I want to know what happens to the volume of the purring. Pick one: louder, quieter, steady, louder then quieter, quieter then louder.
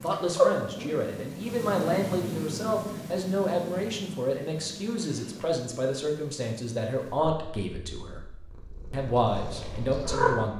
quieter then louder.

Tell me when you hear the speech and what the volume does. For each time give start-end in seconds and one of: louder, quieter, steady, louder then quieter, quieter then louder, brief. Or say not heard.
0.0-8.2 steady
8.9-10.5 brief.